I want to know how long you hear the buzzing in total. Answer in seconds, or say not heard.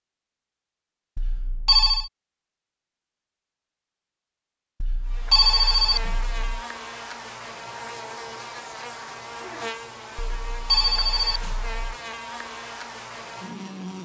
9 s.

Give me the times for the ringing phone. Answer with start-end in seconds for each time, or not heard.
1.1-2.1, 4.8-6.5, 10.2-11.8.